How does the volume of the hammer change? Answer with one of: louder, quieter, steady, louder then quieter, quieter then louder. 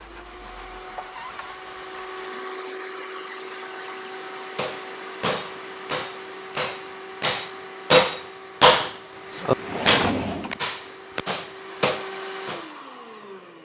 louder then quieter.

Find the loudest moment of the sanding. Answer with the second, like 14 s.
1 s.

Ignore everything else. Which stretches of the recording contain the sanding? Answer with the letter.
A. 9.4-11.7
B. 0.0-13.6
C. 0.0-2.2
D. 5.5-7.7
C.